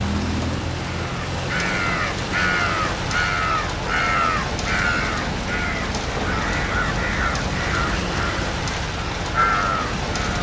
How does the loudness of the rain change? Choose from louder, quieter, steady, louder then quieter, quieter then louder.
steady.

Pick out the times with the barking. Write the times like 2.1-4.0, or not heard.
not heard.